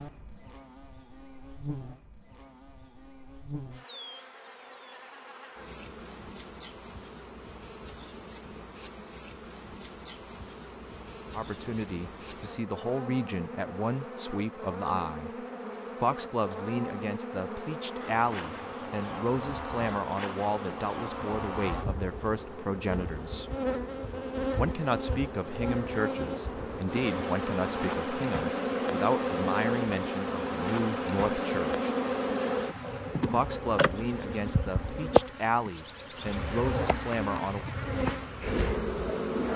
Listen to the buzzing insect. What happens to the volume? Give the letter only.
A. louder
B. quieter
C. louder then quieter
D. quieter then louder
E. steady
A.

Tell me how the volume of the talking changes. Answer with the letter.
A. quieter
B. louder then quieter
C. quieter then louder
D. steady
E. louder
D.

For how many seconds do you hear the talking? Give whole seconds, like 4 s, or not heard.
23 s.